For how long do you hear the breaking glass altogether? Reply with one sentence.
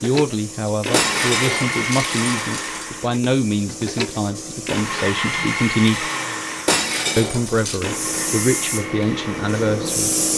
You can hear the breaking glass for 3 seconds altogether.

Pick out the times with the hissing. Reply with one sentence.
The hissing can be heard from 0.0 to 10.3 s.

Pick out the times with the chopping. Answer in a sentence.
The chopping can't be heard in this clip.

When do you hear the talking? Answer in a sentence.
You can hear the talking from 0.0 to 6.1 s and from 7.2 to 10.1 s.